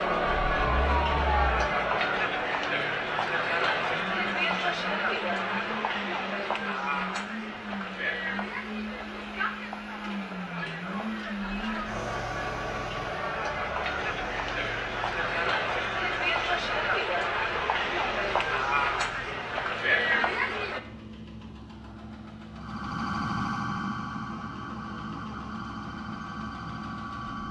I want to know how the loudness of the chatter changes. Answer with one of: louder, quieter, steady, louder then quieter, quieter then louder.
quieter then louder.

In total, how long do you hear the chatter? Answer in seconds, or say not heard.
21 s.